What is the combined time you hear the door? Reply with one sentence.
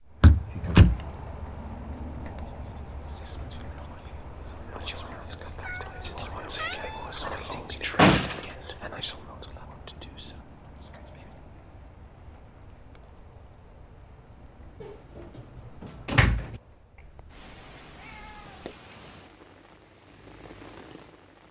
You can hear the door for 2 seconds altogether.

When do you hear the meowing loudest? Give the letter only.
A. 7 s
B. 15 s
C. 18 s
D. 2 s
A.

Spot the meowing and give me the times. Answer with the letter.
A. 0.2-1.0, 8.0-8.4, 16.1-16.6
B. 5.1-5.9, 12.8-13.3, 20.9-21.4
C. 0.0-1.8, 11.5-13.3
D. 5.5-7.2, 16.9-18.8
D.